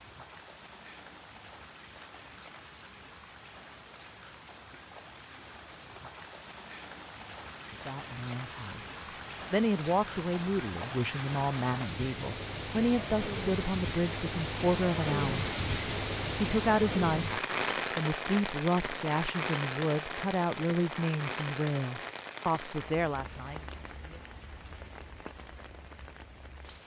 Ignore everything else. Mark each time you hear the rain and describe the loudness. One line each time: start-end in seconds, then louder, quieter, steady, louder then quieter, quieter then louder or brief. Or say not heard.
0.0-26.8 louder then quieter.